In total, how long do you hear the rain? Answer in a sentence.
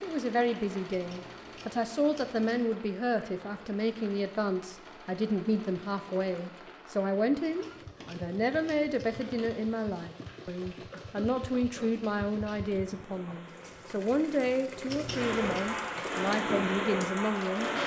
The rain can be heard for 18 seconds in total.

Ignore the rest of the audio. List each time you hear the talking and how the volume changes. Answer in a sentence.
You can hear the talking from 0.0 to 17.7 s, at a steady volume.